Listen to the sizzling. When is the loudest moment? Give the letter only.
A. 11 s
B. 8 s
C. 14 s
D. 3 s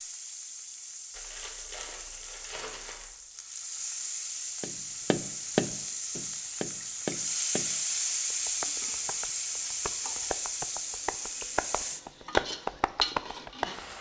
B.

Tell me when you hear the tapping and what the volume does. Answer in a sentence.
You can hear the tapping from 4.6 to 13.8 s, getting quieter then louder.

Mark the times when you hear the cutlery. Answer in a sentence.
The cutlery can't be heard in this clip.